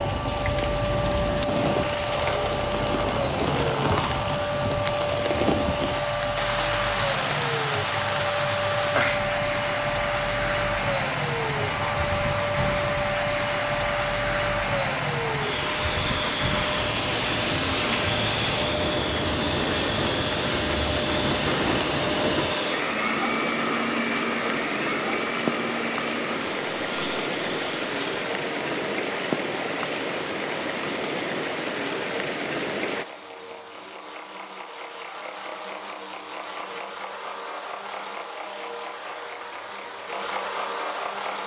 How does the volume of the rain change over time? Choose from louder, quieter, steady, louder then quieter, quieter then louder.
steady.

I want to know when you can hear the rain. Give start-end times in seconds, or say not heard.
0.0-33.0.